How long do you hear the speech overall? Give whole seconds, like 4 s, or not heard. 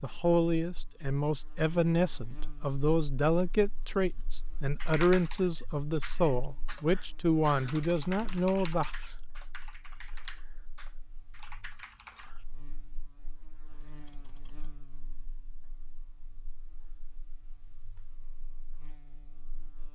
9 s.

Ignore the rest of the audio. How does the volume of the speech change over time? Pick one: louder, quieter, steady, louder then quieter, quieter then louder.
steady.